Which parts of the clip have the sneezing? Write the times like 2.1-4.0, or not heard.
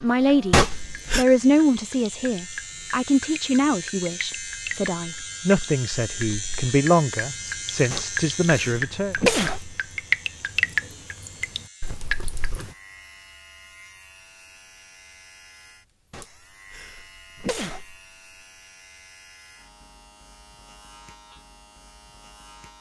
0.5-1.2, 7.9-9.8, 16.1-17.9.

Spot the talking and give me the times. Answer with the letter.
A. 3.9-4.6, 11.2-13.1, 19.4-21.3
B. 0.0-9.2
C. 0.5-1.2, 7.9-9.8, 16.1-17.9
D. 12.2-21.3
B.